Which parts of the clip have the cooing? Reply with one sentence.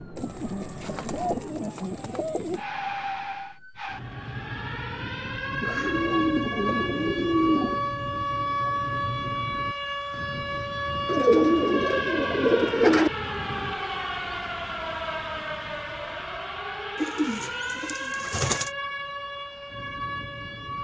The cooing can be heard from 0.1 to 2.6 s, from 5.6 to 7.9 s, from 11.1 to 13.1 s and from 17.0 to 18.7 s.